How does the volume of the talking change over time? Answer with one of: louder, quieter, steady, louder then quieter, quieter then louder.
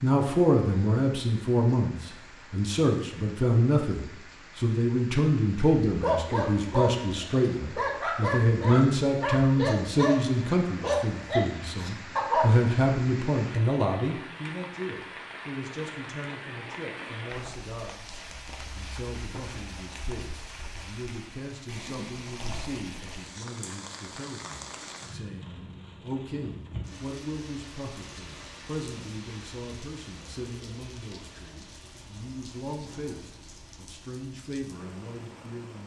quieter.